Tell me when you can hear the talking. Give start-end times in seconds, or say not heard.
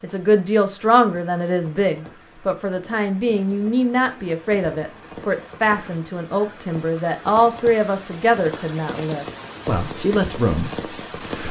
0.0-11.4.